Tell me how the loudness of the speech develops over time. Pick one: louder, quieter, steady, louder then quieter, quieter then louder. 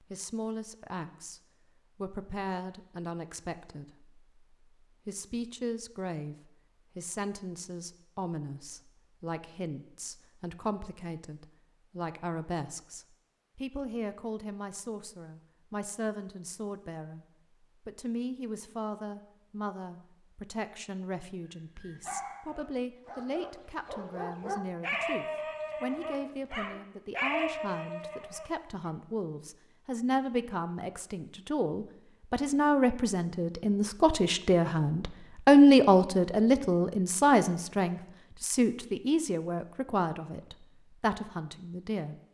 louder.